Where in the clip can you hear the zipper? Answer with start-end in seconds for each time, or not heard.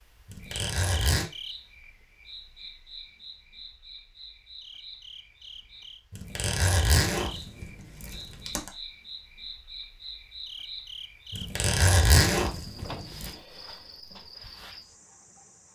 0.2-1.2, 6.1-8.7, 11.3-13.3.